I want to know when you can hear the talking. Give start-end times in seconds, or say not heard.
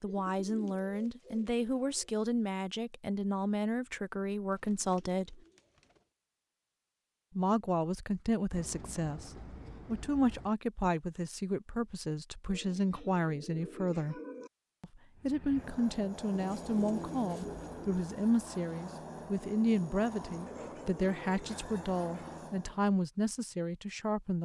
0.0-5.4, 7.3-14.2, 14.8-24.4.